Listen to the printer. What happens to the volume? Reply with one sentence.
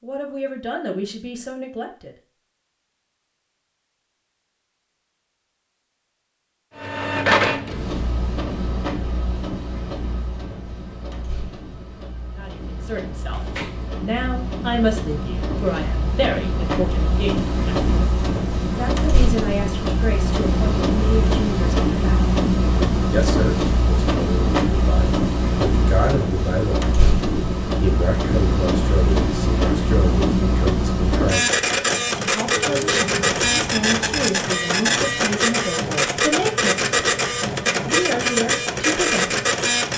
The loudness of the printer goes up.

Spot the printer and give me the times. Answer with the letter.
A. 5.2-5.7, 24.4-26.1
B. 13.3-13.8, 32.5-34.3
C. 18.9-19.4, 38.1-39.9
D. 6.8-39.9
D.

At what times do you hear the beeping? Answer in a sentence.
You can't hear the beeping here.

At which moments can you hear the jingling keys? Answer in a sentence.
The jingling keys can be heard from 13.3 to 13.8 s and from 32.5 to 34.3 s.